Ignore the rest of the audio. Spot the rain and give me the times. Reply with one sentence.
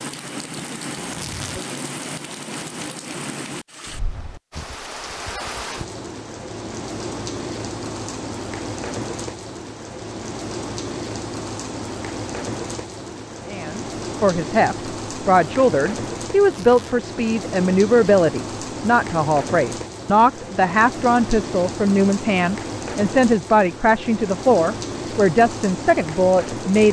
You can hear the rain from 0.0 to 26.8 s.